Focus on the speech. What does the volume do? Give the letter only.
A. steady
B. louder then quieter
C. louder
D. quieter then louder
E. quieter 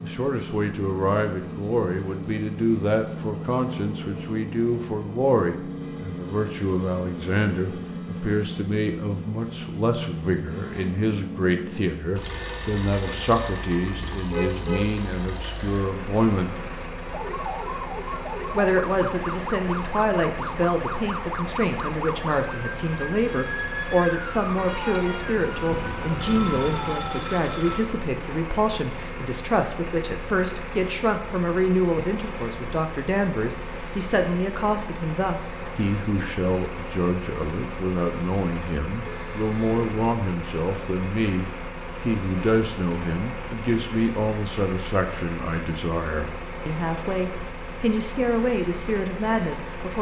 A.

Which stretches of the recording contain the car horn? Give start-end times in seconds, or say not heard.
14.3-14.9, 24.6-25.4, 39.0-39.9.